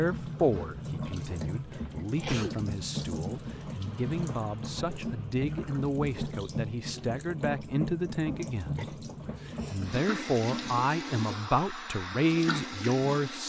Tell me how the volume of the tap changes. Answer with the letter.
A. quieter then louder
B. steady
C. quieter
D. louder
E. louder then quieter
B.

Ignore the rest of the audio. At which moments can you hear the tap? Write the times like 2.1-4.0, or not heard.
0.0-13.4.